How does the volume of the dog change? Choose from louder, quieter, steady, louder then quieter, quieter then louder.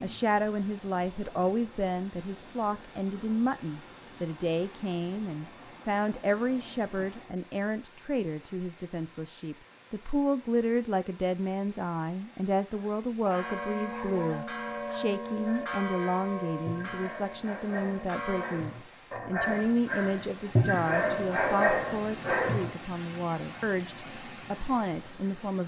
louder.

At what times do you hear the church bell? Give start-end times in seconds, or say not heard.
13.2-18.6.